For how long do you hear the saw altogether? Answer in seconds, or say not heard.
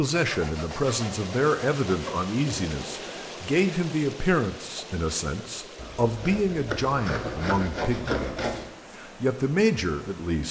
5 s.